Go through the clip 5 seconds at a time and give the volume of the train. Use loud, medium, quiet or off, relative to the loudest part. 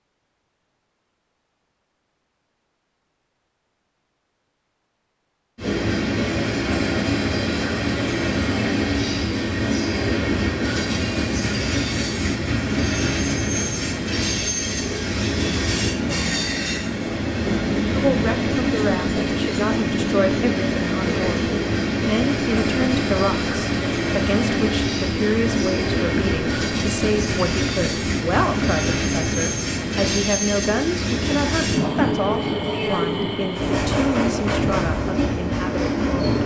off, loud, loud, loud, loud, loud, loud, loud.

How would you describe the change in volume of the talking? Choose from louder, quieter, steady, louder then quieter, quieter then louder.
steady.